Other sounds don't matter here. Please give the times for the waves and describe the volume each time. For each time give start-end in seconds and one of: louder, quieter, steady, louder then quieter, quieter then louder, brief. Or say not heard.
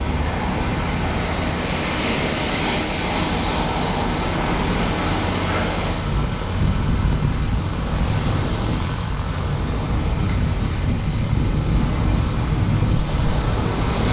0.0-14.0 steady.